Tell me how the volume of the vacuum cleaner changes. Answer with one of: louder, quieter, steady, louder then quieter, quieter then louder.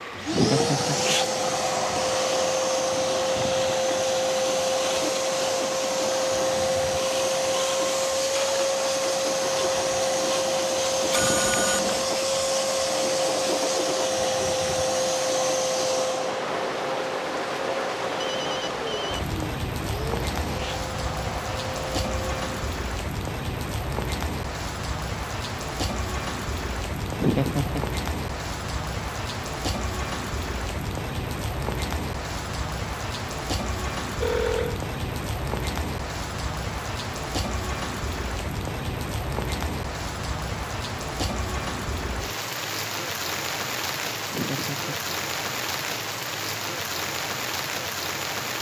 quieter.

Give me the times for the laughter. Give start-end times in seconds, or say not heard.
0.3-1.1, 27.1-28.0, 44.2-45.1.